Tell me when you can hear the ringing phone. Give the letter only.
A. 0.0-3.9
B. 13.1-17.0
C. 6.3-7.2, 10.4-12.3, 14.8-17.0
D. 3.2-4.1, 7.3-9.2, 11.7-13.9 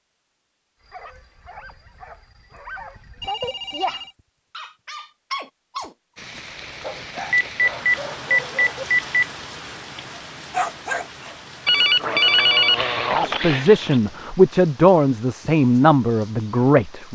D.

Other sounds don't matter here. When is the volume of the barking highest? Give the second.
11 s.